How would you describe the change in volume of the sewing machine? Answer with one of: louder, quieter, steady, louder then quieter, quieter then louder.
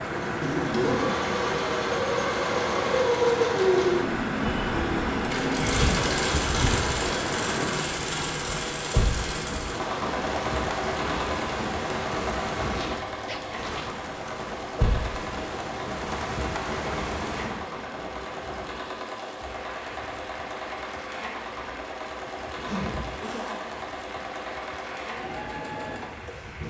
quieter.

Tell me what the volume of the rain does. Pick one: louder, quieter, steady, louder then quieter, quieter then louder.
quieter.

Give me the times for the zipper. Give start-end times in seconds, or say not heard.
0.4-1.1, 12.7-13.9, 22.5-23.9.